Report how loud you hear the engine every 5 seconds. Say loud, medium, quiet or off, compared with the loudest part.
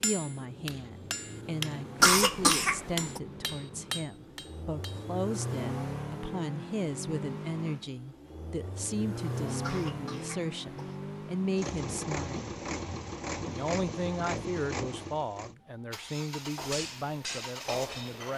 medium, loud, loud, medium.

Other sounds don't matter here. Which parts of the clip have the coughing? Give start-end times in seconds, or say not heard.
2.0-3.2, 9.6-11.0.